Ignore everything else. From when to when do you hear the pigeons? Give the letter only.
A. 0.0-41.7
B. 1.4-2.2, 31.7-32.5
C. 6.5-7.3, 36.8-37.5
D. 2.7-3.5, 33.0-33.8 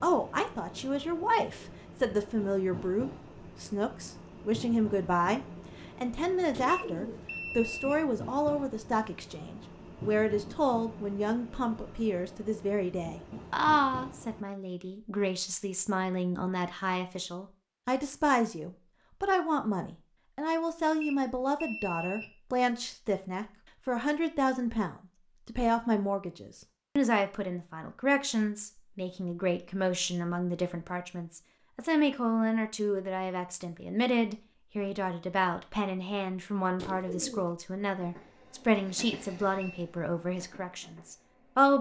C.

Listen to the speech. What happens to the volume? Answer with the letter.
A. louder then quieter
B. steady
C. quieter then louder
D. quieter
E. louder
B.